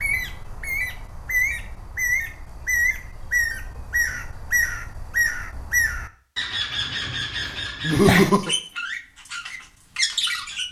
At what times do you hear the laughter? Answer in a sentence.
The laughter can be heard from 7.8 to 8.6 s.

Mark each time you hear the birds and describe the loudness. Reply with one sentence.
The birds can be heard from 0.0 to 10.6 s, at a steady volume.